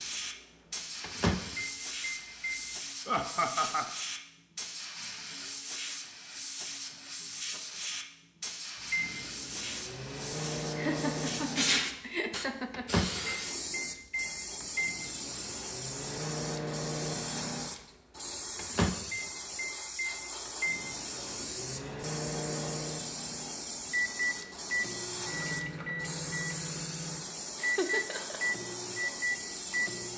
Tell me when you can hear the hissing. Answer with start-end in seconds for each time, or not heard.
0.0-30.1.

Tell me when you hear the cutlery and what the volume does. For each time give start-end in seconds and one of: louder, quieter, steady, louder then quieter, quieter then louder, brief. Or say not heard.
not heard.